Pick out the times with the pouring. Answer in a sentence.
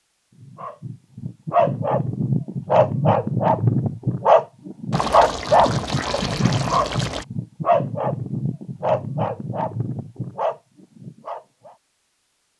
The pouring can be heard from 4.9 to 7.2 s.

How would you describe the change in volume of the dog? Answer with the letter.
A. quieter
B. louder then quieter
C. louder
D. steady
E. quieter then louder
A.